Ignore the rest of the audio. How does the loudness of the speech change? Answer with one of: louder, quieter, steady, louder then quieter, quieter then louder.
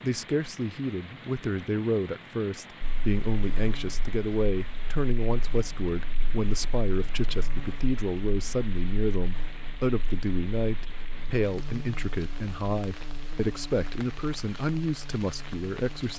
steady.